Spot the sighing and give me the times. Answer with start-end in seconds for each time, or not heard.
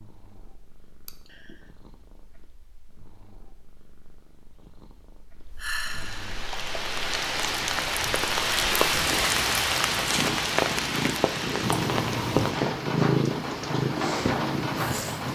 1.1-1.6, 5.5-6.3, 11.6-12.6.